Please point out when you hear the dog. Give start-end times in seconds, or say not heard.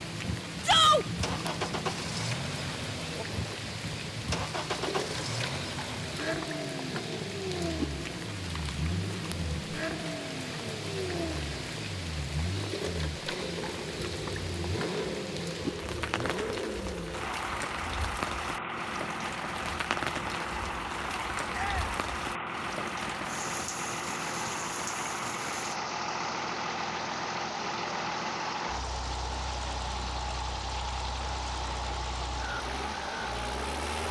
not heard.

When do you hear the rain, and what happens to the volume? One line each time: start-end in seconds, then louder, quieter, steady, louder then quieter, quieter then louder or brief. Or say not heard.
0.0-34.0 steady.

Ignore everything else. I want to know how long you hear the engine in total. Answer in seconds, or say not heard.
34 s.